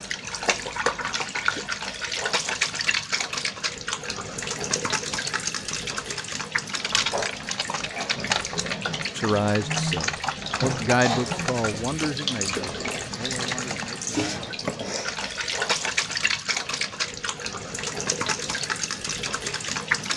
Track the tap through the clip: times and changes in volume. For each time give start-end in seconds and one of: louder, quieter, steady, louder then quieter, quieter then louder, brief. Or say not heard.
0.0-20.1 steady.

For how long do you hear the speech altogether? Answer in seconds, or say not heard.
6 s.